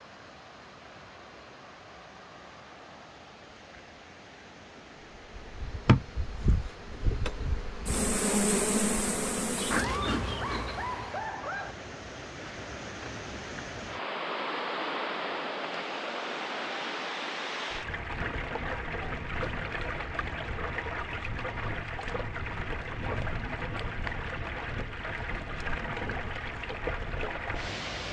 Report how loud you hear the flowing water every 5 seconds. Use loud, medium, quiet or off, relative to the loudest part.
quiet, quiet, loud, loud, loud, loud.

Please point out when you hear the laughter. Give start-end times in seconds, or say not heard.
9.8-11.8.